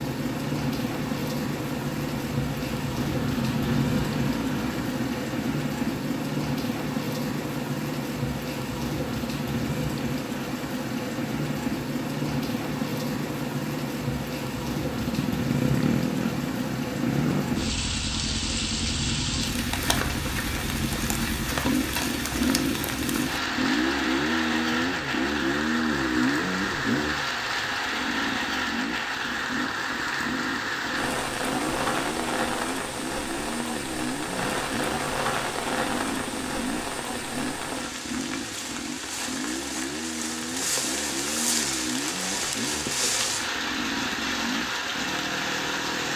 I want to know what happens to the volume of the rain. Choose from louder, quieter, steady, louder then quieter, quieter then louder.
steady.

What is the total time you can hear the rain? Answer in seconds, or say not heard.
46 s.